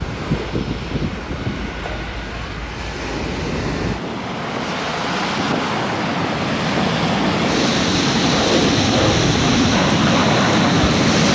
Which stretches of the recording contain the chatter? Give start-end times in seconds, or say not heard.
not heard.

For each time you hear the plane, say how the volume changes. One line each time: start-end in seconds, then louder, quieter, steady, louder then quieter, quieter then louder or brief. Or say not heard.
0.0-11.3 louder.